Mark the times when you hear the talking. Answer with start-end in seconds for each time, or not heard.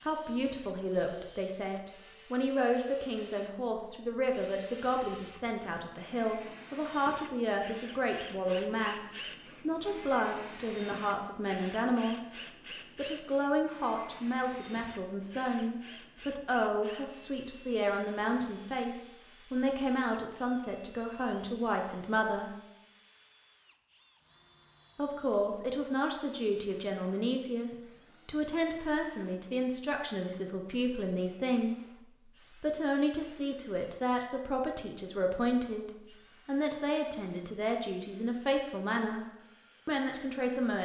0.0-12.3, 12.9-22.5, 24.9-39.2, 39.9-40.8.